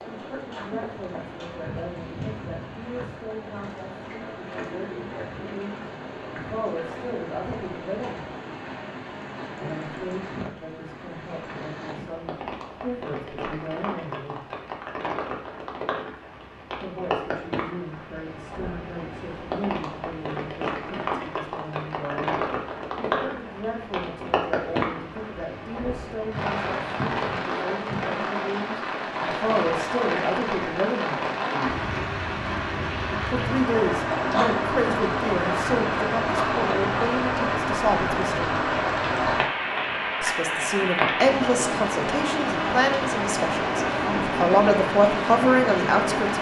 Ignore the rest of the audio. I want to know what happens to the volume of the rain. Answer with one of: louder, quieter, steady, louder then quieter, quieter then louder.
louder.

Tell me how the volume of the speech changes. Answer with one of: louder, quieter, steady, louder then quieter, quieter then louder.
louder.